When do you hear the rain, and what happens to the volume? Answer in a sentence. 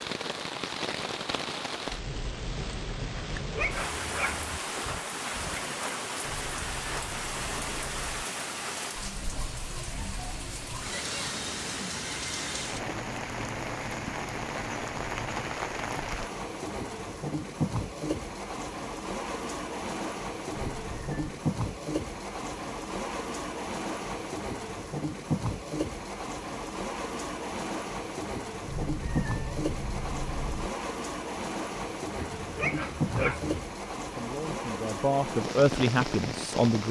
The rain can be heard from 0.0 to 36.8 s, at a steady volume.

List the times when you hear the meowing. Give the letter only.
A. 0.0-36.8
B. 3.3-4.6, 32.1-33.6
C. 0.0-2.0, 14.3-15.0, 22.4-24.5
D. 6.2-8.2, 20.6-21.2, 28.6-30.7
D.